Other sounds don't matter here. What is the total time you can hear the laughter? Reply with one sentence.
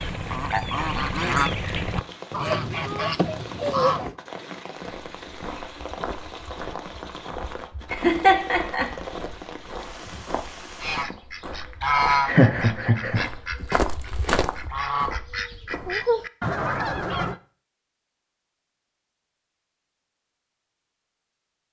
The laughter can be heard for 2 seconds in total.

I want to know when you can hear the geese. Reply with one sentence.
You can hear the geese from 0.0 to 4.2 s and from 10.8 to 17.4 s.